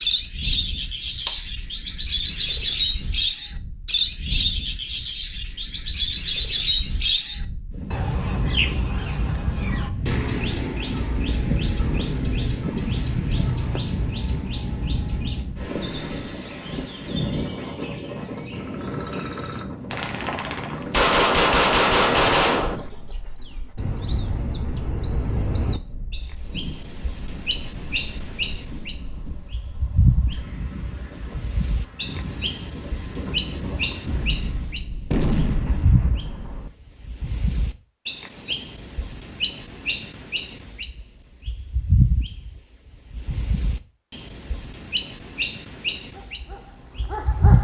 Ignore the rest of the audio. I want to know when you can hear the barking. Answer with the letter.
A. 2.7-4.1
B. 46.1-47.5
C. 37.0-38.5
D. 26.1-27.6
B.